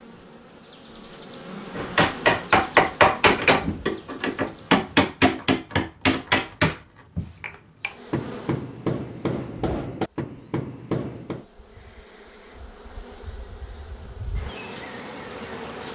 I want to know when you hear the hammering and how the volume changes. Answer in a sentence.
The hammering can be heard from 1.8 to 11.4 s, getting quieter.